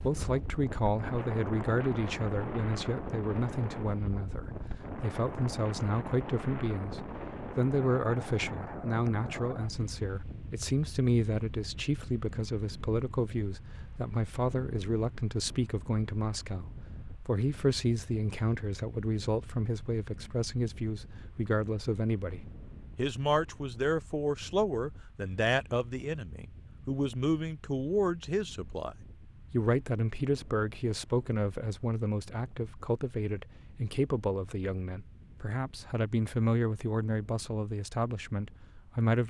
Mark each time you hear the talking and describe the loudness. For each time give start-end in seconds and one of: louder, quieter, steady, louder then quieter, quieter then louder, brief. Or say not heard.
0.0-39.2 steady.